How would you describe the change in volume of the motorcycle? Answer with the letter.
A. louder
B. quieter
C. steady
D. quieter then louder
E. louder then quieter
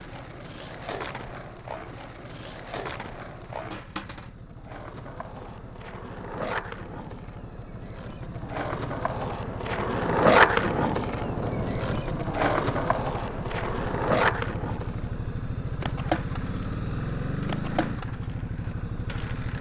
A.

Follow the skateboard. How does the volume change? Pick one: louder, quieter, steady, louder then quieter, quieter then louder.
louder then quieter.